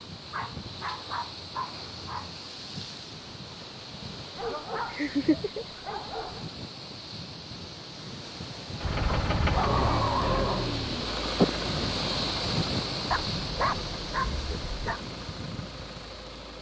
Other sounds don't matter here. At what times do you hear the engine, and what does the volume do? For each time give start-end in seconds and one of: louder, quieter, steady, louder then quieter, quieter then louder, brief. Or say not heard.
8.8-16.5 quieter.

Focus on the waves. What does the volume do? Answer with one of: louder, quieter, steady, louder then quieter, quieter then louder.
louder then quieter.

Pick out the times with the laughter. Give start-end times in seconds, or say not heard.
4.9-5.7.